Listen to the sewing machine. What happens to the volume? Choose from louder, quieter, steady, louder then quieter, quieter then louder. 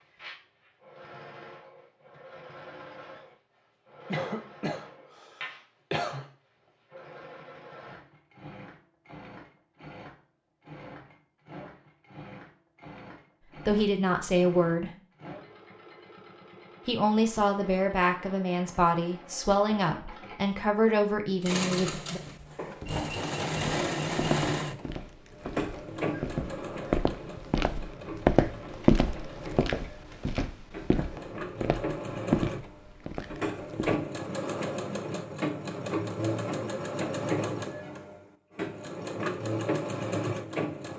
louder.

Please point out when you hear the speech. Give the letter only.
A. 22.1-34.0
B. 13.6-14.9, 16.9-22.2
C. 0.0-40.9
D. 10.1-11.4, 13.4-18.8
B.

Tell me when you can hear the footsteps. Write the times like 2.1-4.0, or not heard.
22.1-34.0.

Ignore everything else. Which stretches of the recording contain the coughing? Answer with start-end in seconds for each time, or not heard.
4.0-6.2.